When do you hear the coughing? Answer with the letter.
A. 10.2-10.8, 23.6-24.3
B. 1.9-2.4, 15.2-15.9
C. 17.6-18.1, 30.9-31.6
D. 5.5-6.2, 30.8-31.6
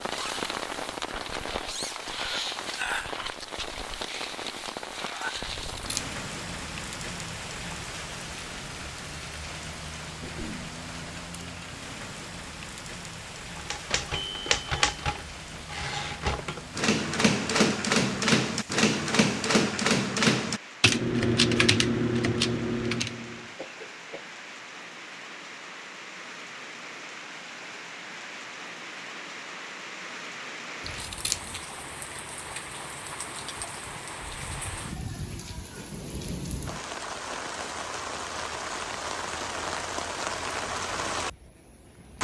A.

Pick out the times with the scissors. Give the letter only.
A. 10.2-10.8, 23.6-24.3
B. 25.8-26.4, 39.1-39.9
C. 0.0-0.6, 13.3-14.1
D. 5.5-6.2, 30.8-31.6
D.